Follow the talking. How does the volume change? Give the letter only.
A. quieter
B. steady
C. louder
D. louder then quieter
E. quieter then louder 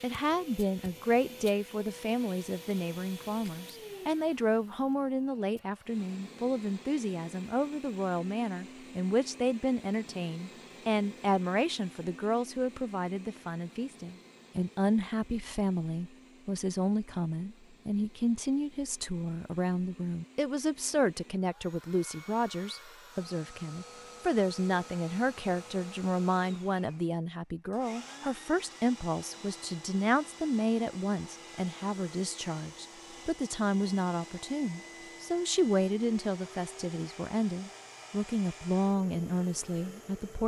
B.